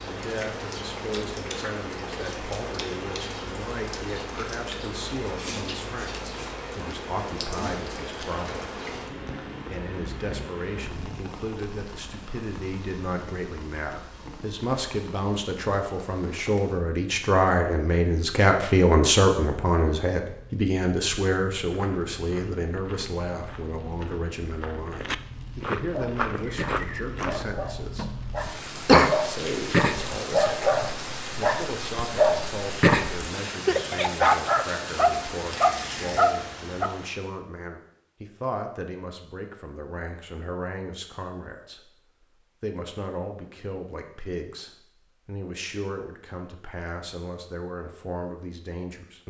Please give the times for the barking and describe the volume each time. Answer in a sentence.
You can hear the barking from 25.9 to 36.9 s, getting louder.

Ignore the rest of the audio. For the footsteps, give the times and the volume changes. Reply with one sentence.
The footsteps can be heard from 21.6 to 27.5 s, getting louder.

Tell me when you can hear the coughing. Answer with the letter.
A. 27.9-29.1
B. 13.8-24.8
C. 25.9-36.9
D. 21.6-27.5
A.